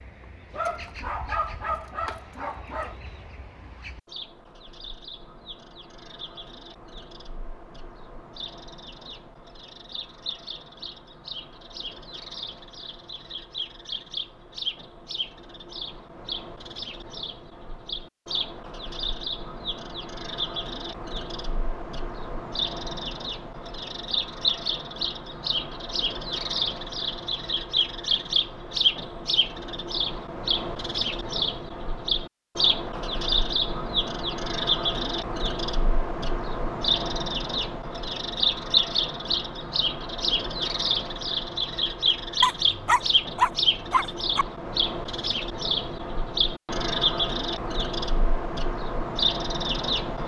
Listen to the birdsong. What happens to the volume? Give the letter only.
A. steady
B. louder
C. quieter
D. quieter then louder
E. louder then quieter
B.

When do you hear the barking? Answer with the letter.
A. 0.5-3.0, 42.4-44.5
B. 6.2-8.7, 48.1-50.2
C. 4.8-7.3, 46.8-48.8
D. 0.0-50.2
A.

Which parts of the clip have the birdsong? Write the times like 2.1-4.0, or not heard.
0.0-50.2.